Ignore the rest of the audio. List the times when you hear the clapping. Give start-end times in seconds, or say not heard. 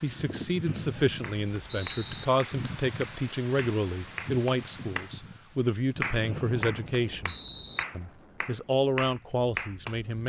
1.2-5.1, 6.0-9.9.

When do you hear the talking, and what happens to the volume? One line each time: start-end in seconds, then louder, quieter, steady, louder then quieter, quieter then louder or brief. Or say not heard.
0.0-7.3 steady
8.0-10.2 brief.